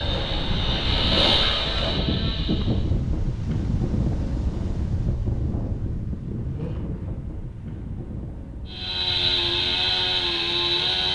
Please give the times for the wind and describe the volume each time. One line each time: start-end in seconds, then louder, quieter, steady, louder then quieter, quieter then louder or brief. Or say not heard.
0.0-11.0 quieter.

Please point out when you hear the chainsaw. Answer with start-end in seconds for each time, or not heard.
0.0-2.9, 8.7-11.0.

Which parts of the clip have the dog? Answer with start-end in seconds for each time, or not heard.
not heard.